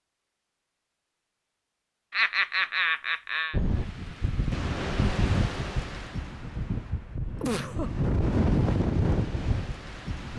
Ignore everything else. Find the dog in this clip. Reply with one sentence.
The dog can't be heard in this clip.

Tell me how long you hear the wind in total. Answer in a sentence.
You can hear the wind for 7 seconds altogether.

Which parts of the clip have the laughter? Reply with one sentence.
The laughter can be heard from 2.1 to 3.5 s and from 7.4 to 7.9 s.